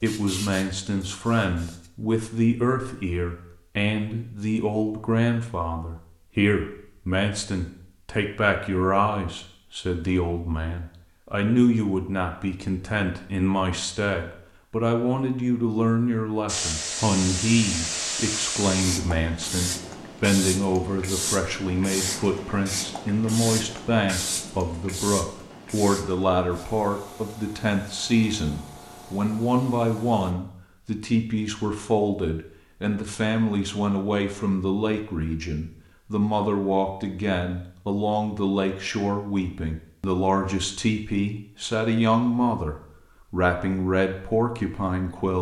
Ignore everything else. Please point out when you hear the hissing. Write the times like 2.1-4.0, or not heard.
0.0-1.9, 16.4-30.4.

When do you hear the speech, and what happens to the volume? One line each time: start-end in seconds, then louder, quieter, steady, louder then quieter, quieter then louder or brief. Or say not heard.
0.0-45.3 steady.